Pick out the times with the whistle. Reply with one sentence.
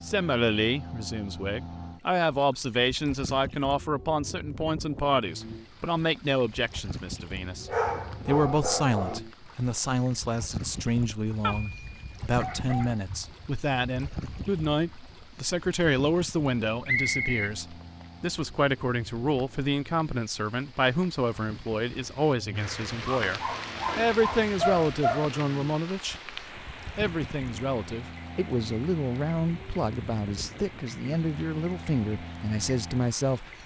You can hear the whistle from 16.9 to 17.5 s.